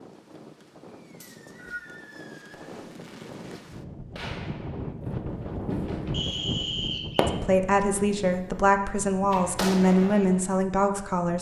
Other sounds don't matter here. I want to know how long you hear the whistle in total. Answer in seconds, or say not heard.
2 s.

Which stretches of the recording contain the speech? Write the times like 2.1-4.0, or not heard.
7.2-11.3.